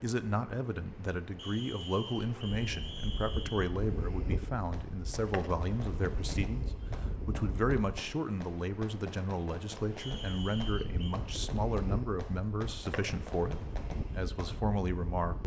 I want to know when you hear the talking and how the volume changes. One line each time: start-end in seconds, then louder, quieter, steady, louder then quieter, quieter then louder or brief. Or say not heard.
0.0-15.4 steady.